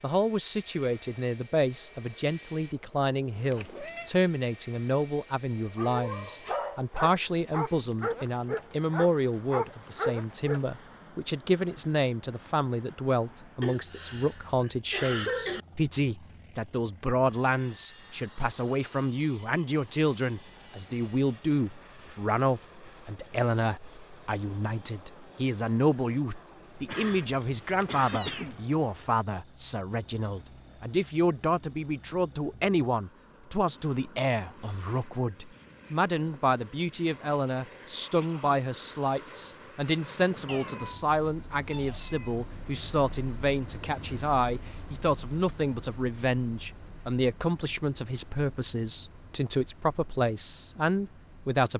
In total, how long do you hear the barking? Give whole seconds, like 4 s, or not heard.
5 s.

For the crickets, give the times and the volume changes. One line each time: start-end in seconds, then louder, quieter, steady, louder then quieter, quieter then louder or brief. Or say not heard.
not heard.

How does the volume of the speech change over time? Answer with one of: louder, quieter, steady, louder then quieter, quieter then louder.
steady.